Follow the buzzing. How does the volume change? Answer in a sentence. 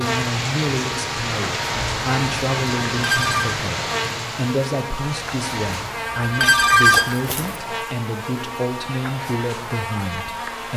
The loudness of the buzzing stays about the same.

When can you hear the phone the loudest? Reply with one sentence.
The volume of the phone peaks at 7 seconds.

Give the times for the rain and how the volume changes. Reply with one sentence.
The rain can be heard from 0.0 to 6.0 s, getting quieter.